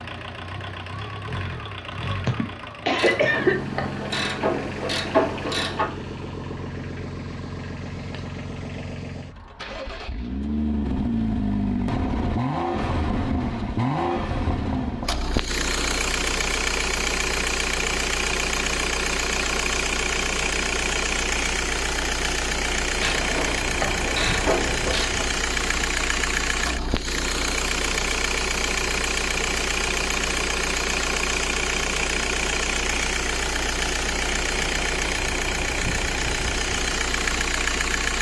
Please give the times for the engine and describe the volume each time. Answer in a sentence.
The engine can be heard from 0.0 to 38.1 s, getting louder.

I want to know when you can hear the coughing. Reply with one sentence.
The coughing can be heard from 2.2 to 3.5 s.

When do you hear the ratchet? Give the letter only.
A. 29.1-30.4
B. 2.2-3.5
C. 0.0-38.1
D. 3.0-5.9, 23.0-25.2
D.